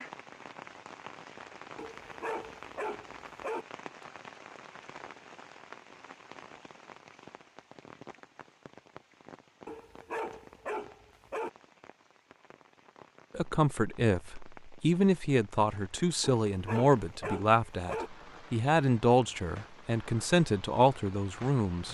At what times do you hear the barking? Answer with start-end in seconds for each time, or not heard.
1.8-3.6, 9.7-11.5, 16.2-18.1.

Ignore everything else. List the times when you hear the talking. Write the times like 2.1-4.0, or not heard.
13.3-21.8.